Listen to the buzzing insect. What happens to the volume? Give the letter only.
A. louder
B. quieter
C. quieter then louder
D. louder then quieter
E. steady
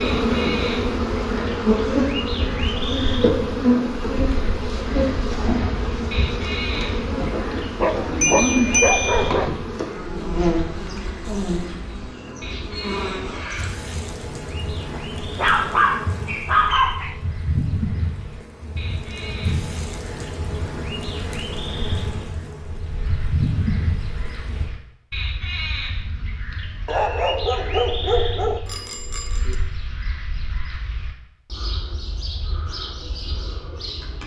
B.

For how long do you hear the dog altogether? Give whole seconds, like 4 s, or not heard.
6 s.